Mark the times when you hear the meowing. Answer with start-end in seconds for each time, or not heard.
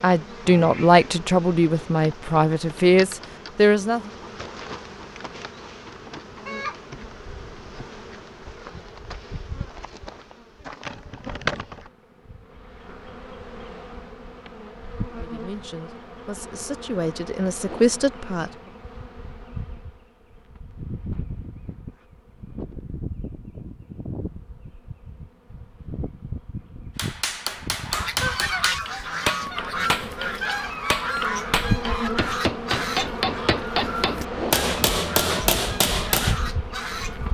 not heard.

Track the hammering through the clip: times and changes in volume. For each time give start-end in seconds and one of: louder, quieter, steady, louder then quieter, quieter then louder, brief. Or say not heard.
26.9-36.4 louder.